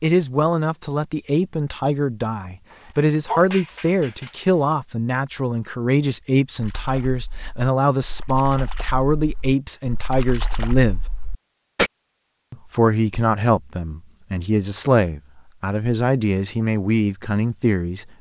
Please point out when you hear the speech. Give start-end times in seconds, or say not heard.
0.0-11.1, 12.5-18.1.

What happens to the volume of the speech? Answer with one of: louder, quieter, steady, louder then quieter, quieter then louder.
steady.